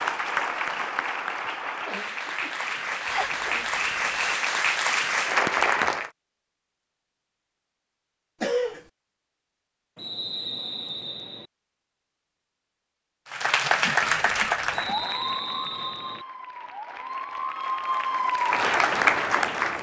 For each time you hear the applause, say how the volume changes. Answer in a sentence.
You can hear the applause from 0.0 to 6.1 s, getting louder; and from 13.2 to 19.7 s, getting quieter then louder.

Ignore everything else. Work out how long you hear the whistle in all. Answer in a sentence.
The whistle can be heard for 4 seconds in total.